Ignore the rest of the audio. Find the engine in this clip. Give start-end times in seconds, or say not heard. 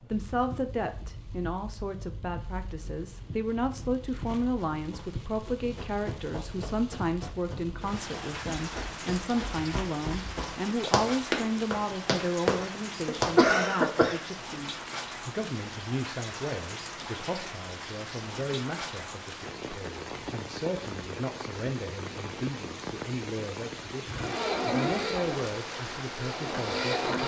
24.1-27.2.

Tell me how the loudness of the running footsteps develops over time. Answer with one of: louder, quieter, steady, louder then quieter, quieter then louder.
louder.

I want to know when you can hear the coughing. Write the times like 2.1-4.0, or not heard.
13.1-14.2.